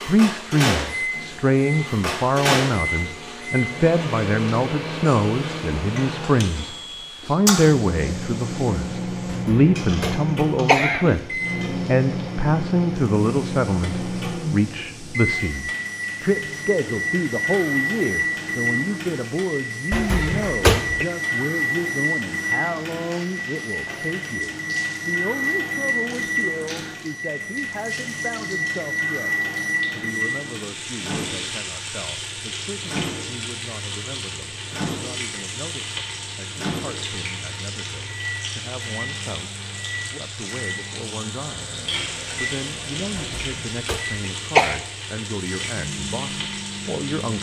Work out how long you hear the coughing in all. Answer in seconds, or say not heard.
5 s.